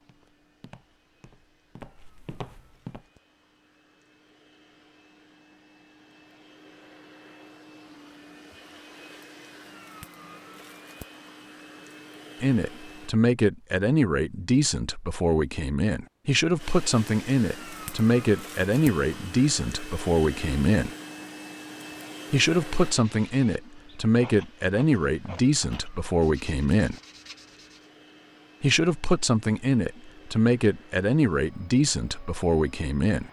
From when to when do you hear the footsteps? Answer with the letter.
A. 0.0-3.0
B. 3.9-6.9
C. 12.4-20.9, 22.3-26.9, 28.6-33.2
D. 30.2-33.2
A.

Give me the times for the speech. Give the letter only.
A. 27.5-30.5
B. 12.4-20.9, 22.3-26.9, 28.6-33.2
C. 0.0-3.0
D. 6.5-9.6
B.